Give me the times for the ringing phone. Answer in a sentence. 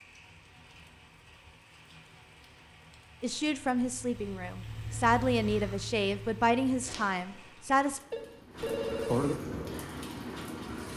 You can hear the ringing phone from 8.1 to 9.3 s.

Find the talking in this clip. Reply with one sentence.
The talking can be heard from 3.2 to 8.0 s.